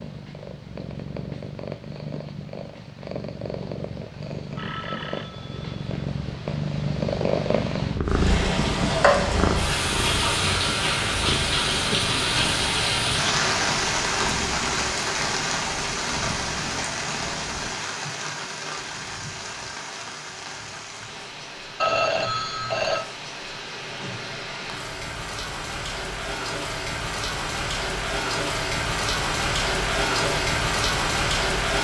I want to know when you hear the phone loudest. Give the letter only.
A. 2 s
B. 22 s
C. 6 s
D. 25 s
B.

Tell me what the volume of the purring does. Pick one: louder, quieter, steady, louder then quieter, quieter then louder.
louder then quieter.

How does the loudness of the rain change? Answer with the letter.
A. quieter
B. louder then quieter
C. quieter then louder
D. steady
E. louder
C.